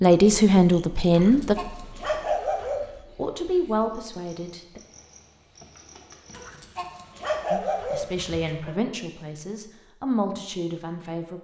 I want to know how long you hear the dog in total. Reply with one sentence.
You can hear the dog for 4 seconds altogether.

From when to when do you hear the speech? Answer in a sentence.
The speech can be heard from 0.0 to 1.6 s, from 3.1 to 4.8 s and from 7.5 to 11.3 s.